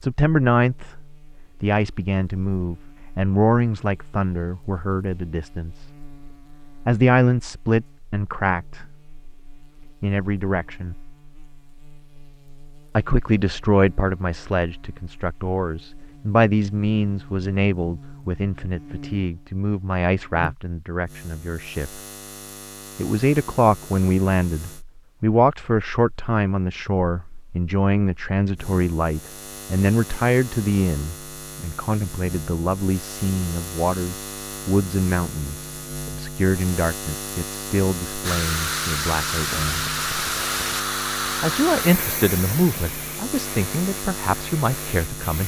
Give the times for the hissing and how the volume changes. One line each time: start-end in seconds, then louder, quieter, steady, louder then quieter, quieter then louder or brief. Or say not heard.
38.2-45.4 quieter.